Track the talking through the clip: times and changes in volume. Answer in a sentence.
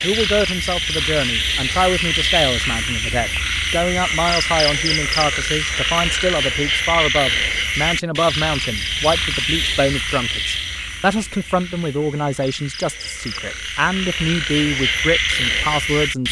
You can hear the talking from 0.0 to 16.2 s, at a steady volume.